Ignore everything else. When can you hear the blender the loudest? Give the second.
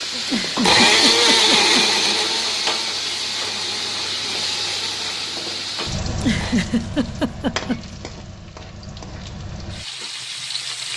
1 s.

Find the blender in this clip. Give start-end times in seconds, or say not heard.
0.5-6.7.